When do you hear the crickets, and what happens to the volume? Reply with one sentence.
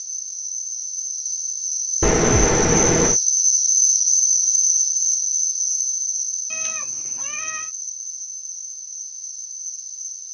The crickets can be heard from 0.0 to 10.2 s, getting louder then quieter.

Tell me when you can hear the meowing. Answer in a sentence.
You can hear the meowing from 2.0 to 3.2 s and from 6.5 to 7.7 s.